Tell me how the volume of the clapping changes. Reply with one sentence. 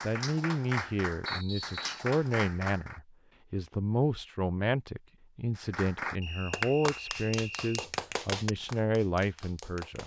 The loudness of the clapping goes down.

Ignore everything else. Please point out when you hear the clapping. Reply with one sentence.
The clapping can be heard from 0.0 to 3.0 s and from 5.5 to 10.0 s.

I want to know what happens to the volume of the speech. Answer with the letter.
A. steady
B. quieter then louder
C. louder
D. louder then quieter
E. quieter
A.